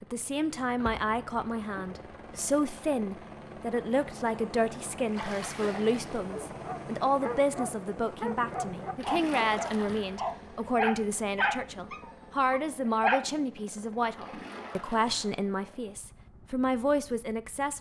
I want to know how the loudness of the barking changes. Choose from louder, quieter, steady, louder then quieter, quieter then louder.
louder then quieter.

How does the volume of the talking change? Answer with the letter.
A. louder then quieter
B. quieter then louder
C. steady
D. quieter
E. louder
C.